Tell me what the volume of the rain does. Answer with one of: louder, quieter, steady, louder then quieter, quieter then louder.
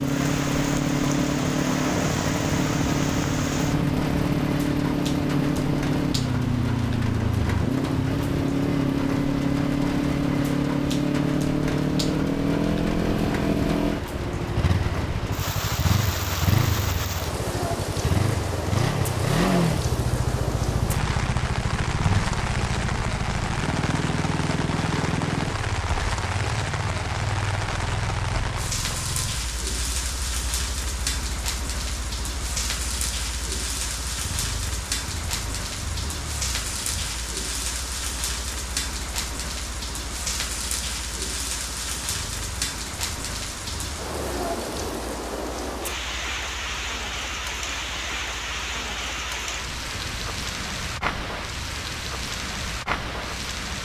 steady.